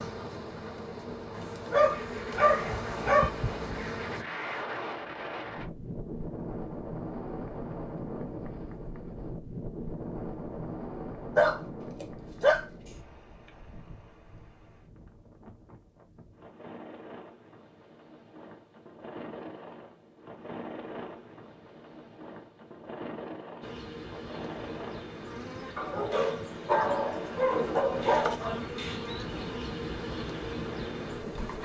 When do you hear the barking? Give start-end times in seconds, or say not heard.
1.4-3.3, 11.3-12.7, 25.8-28.6.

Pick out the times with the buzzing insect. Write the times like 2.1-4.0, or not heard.
0.0-4.2, 23.6-31.5.